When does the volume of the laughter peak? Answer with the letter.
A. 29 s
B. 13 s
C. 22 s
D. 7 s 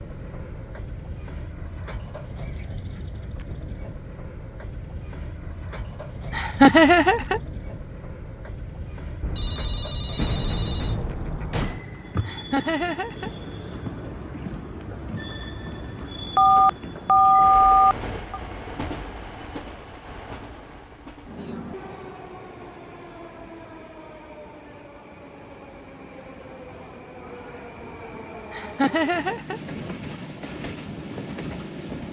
D.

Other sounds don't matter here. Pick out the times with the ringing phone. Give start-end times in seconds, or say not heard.
9.2-11.8, 16.4-18.4.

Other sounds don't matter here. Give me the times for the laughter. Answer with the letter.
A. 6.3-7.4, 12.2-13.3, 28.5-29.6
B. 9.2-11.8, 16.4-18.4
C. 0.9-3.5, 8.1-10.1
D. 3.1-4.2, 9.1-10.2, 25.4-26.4
A.